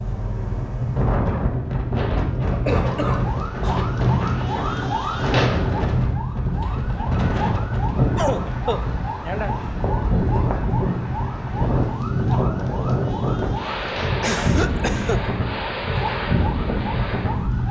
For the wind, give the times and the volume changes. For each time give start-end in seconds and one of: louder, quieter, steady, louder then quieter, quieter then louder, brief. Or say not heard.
0.0-17.6 steady.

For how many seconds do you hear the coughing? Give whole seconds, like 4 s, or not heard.
4 s.